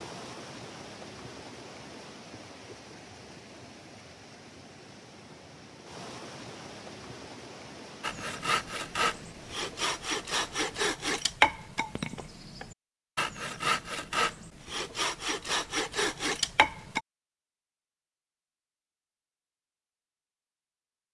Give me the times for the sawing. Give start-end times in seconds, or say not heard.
8.0-17.0.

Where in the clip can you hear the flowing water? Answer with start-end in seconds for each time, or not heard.
0.0-10.9.